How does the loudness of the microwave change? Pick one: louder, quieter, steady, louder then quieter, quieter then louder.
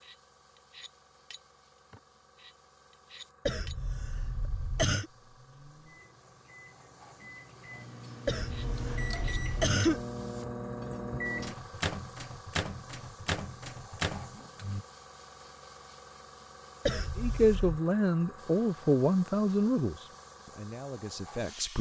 louder.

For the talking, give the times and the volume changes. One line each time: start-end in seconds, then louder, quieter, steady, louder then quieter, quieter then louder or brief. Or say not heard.
17.1-21.7 quieter.